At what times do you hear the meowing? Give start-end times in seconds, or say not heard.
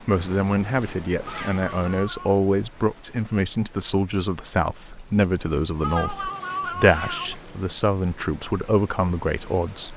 1.4-2.4, 5.8-7.3.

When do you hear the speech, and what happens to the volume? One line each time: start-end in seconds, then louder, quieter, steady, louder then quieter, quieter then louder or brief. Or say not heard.
0.1-9.9 steady.